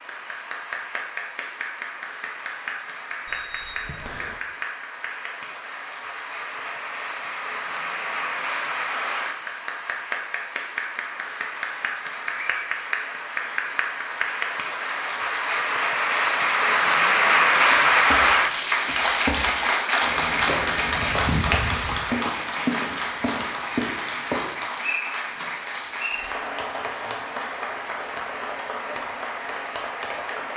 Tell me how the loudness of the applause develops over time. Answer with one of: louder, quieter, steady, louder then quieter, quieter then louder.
louder then quieter.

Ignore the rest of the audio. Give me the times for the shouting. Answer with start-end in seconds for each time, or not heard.
not heard.